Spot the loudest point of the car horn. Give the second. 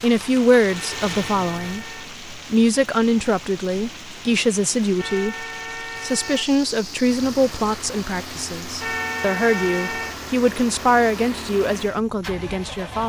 9 s.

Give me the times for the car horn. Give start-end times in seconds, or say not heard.
0.7-2.1, 5.0-6.5, 8.8-10.2.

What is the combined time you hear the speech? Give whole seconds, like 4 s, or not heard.
13 s.